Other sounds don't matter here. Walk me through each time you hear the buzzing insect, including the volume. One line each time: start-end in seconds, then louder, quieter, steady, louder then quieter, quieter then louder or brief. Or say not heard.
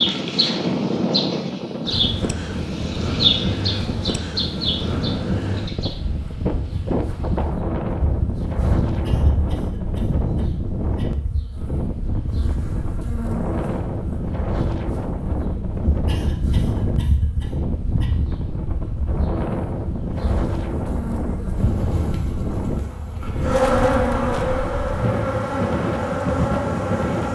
0.0-27.3 quieter then louder.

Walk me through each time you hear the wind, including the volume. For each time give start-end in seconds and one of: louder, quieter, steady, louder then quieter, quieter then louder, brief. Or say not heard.
0.0-27.3 steady.